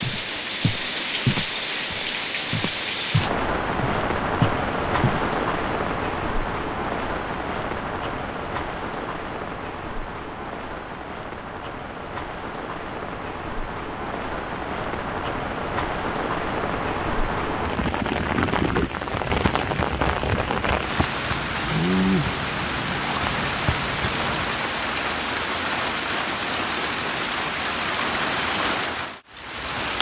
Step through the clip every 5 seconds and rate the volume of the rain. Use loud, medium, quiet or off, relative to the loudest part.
loud, loud, medium, loud, loud, loud.